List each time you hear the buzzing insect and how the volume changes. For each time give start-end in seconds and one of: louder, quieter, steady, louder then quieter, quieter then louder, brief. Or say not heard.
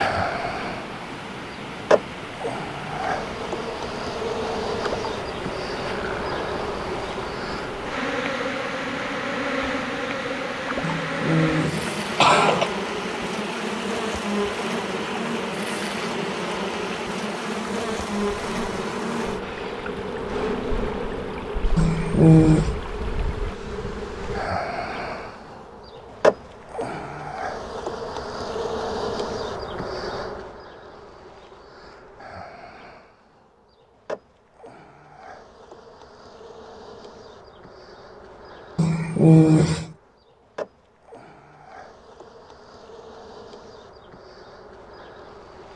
0.0-45.7 quieter.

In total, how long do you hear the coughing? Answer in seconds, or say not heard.
4 s.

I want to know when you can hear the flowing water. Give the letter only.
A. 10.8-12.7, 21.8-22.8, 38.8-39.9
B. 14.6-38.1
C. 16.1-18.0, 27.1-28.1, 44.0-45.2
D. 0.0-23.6
D.